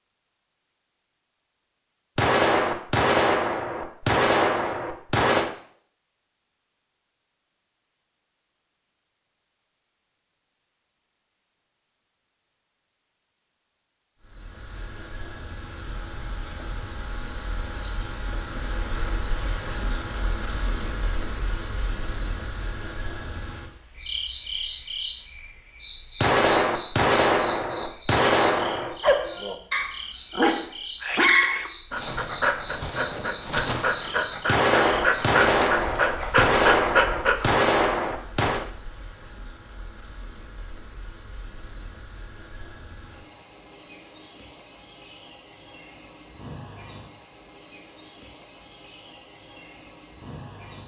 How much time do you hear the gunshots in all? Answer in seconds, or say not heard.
10 s.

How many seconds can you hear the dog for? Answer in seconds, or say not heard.
9 s.